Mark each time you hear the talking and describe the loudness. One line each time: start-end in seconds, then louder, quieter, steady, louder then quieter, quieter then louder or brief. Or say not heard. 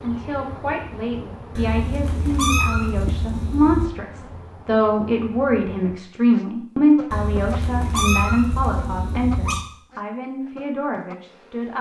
0.0-11.7 louder then quieter.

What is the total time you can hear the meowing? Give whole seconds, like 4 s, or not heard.
5 s.